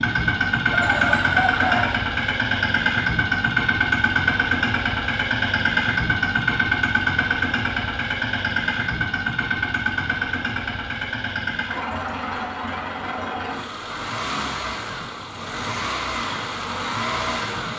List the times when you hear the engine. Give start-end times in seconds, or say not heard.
0.0-17.7.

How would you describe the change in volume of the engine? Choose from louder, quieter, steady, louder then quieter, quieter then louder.
quieter.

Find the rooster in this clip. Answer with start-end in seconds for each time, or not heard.
0.7-2.0.